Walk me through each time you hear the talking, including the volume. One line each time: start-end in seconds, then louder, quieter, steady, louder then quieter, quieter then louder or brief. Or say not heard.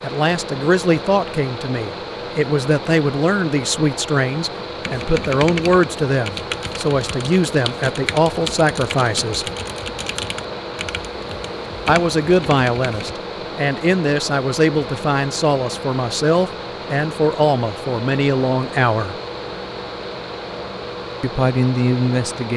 0.0-9.4 steady
11.8-19.1 steady
21.2-22.5 brief.